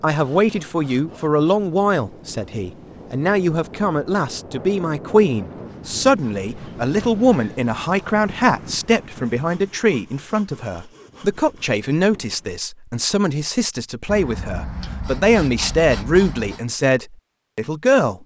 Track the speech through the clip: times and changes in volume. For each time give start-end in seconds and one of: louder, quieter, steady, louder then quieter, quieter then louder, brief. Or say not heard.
0.0-18.1 steady.